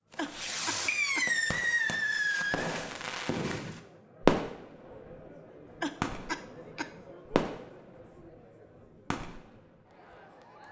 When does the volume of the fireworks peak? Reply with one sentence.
The volume of the fireworks peaks at 4 seconds.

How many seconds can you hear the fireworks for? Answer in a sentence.
The fireworks can be heard for 10 seconds in total.